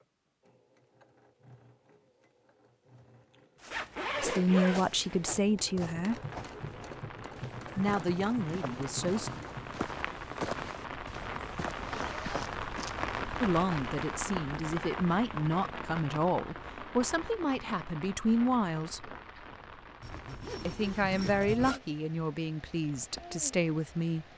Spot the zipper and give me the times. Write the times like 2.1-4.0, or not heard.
3.7-5.3, 11.8-12.9, 20.0-21.8.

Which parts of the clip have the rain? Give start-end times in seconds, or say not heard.
6.0-24.3.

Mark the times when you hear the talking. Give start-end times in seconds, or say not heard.
4.2-6.2, 7.8-9.3, 13.4-19.1, 20.6-24.2.